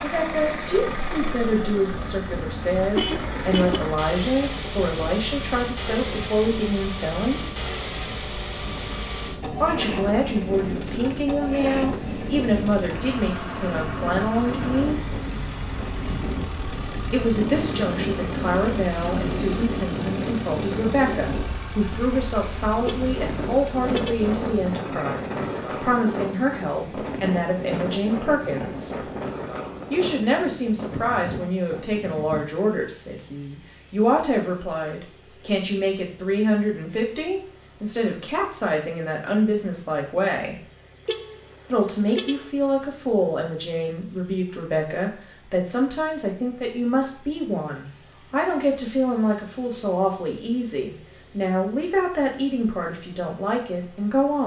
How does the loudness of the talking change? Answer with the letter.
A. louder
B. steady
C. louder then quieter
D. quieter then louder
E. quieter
B.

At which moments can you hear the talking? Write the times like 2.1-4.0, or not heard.
0.0-7.4, 9.6-14.9, 17.1-29.1, 29.9-40.5, 41.7-54.4.